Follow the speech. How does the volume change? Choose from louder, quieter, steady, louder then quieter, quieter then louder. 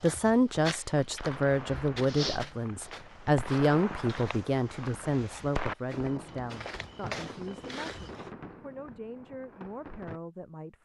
quieter.